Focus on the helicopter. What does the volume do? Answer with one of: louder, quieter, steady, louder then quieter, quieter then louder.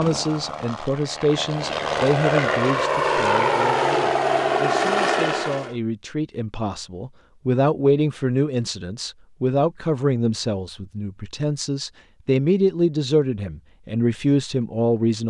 louder.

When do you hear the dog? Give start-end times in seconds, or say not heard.
not heard.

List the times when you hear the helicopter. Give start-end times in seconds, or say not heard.
0.0-5.8.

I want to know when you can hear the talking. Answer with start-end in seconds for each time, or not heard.
0.0-15.2.